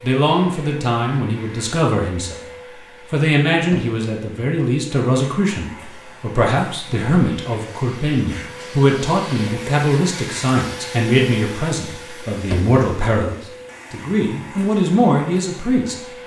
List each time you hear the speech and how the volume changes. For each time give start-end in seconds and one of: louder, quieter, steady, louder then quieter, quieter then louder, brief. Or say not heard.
0.0-2.5 brief
3.1-15.9 steady.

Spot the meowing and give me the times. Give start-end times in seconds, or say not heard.
not heard.